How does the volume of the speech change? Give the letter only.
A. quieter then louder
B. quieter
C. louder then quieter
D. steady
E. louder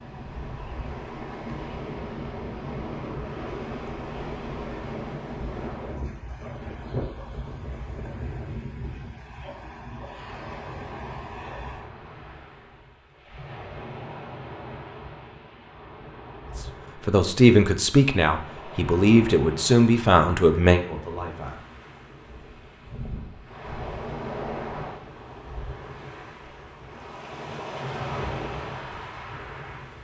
B.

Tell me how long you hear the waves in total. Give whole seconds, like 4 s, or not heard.
30 s.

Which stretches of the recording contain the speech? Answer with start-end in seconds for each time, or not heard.
17.1-22.2.